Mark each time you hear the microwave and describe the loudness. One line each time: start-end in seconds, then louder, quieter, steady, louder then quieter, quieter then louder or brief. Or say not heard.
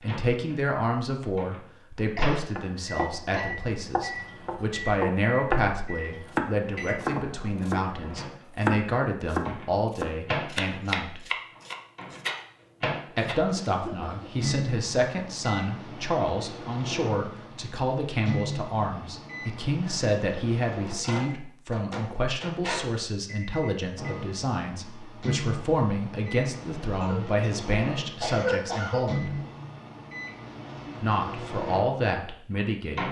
0.0-33.0 steady.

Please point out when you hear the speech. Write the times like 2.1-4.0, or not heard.
0.0-11.2, 13.2-29.4, 30.9-33.0.